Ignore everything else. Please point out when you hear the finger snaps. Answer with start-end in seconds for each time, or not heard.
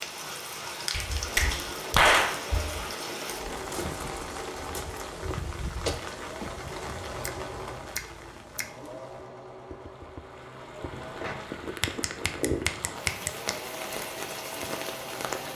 0.9-2.8, 7.0-8.7, 10.9-13.6.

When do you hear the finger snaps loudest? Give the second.
2 s.